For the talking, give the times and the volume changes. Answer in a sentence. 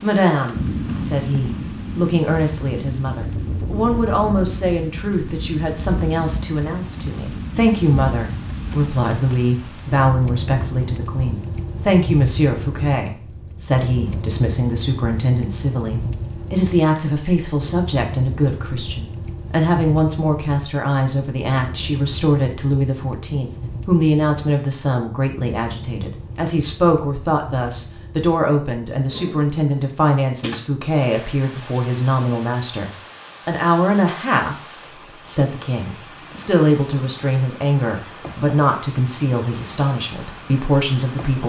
You can hear the talking from 0.0 to 34.5 s, at a steady volume; and from 35.2 to 41.4 s, at a steady volume.